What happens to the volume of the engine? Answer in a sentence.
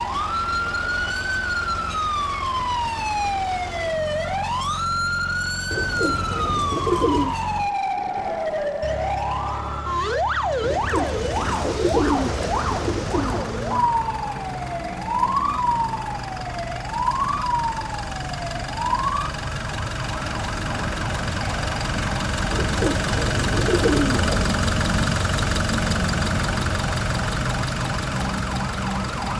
The loudness of the engine goes up.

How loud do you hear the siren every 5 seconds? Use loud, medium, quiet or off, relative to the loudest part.
loud, loud, loud, loud, medium, medium.